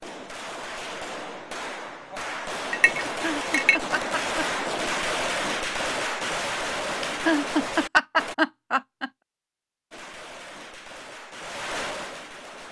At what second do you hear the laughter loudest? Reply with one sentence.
The loudest moment of the laughter is at 8 seconds.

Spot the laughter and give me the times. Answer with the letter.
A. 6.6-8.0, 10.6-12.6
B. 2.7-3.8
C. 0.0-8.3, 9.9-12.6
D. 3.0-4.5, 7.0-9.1
D.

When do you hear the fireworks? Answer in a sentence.
You can hear the fireworks from 0.0 to 8.3 s and from 9.9 to 12.6 s.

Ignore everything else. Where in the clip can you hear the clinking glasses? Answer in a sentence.
The clinking glasses can be heard from 2.7 to 3.8 s.